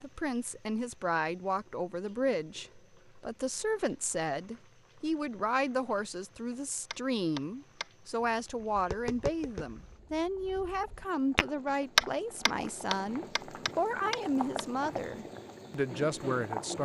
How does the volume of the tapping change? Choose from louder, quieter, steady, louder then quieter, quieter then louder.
louder then quieter.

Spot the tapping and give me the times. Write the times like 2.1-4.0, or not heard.
6.9-14.7.